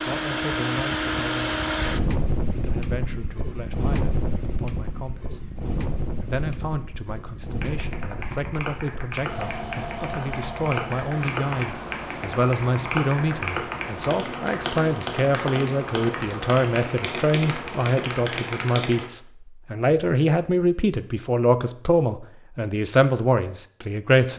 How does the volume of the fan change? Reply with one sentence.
The volume of the fan goes down.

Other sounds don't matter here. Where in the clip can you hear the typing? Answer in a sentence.
The typing can be heard from 7.6 to 19.1 s.